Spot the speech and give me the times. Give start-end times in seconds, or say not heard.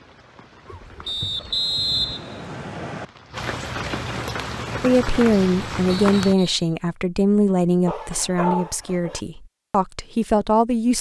4.8-10.9.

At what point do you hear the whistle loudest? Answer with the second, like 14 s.
2 s.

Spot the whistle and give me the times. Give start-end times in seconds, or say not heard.
1.1-3.0, 6.0-6.8.